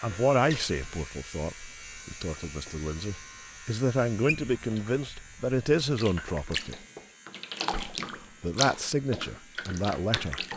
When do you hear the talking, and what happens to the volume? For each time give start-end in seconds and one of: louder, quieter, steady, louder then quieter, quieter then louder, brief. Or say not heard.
0.0-6.8 quieter then louder
7.7-10.4 brief.